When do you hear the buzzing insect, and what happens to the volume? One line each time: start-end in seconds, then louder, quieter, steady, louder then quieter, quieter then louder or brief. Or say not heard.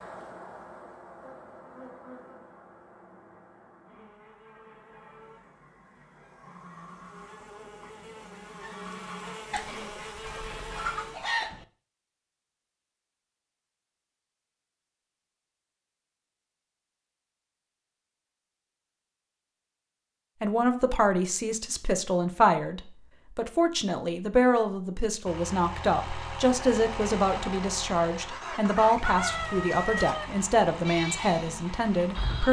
0.0-11.3 quieter then louder.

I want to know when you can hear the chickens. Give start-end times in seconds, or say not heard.
9.5-11.7, 28.7-30.2.